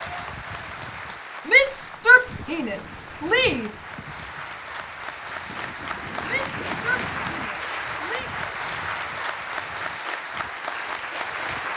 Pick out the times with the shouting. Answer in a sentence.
The shouting can be heard from 1.4 to 3.8 s and from 6.2 to 8.3 s.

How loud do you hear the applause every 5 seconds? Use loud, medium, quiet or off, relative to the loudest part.
medium, loud, loud.